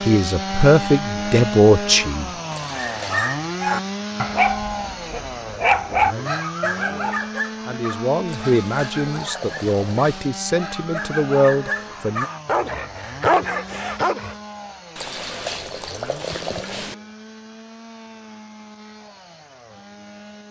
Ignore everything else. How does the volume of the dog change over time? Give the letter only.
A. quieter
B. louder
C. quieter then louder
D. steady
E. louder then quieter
C.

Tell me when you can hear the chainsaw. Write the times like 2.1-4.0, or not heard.
0.0-20.4.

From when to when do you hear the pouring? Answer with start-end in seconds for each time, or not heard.
2.5-3.2, 8.2-10.3, 14.9-16.9.